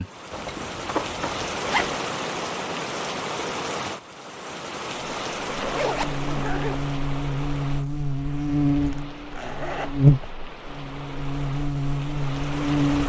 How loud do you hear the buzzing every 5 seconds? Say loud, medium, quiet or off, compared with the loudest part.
off, medium, loud.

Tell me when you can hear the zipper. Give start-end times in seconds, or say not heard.
0.3-1.9, 5.5-6.8, 8.8-10.3.